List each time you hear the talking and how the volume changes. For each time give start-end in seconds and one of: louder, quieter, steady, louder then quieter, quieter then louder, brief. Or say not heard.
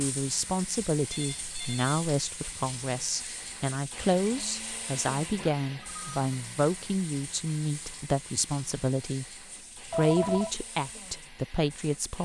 0.0-9.2 steady
9.8-12.2 brief.